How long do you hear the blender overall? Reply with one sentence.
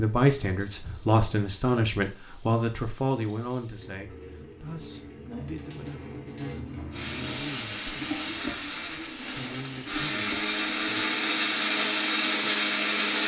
The blender can be heard for 6 seconds in total.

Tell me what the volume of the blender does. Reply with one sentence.
The loudness of the blender goes up.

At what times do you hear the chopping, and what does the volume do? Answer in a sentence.
The chopping can't be heard in this clip.